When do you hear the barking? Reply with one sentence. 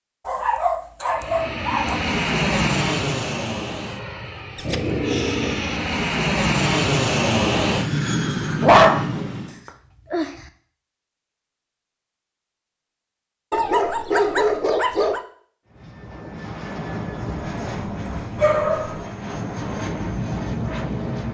You can hear the barking from 0.2 to 2.0 s, from 4.5 to 5.8 s, from 8.6 to 10.4 s, from 13.5 to 15.2 s and from 18.4 to 19.0 s.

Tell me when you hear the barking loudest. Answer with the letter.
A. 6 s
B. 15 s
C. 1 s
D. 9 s
D.